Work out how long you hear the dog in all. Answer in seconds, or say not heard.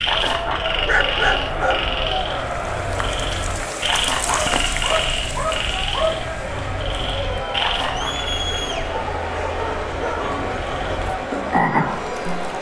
5 s.